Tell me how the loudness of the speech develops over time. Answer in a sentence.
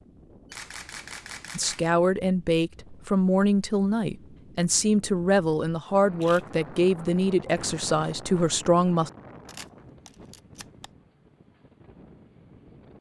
The loudness of the speech stays about the same.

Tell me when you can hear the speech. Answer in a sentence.
You can hear the speech from 1.6 to 9.1 s.